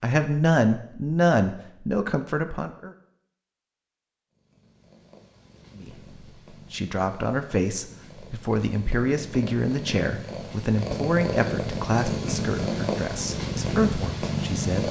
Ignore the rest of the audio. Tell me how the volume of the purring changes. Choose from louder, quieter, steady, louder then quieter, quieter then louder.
louder.